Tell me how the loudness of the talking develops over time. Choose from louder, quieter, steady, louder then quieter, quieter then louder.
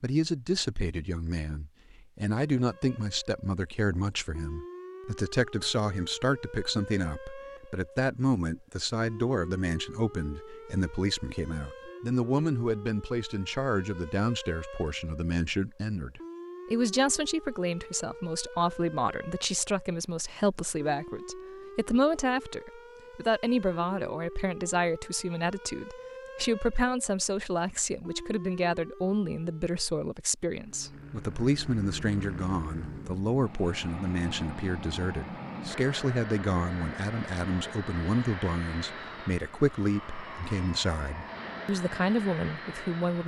steady.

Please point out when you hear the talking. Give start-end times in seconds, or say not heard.
0.0-43.2.